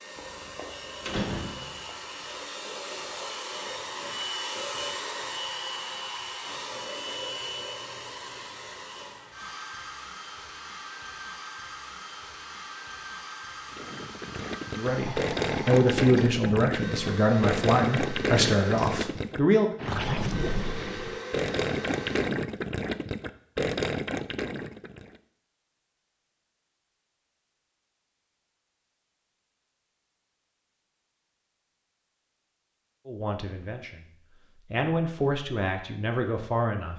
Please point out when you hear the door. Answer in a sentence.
You can hear the door from 0.1 to 1.9 s.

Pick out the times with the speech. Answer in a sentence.
The speech can be heard from 14.8 to 19.7 s and from 33.0 to 36.9 s.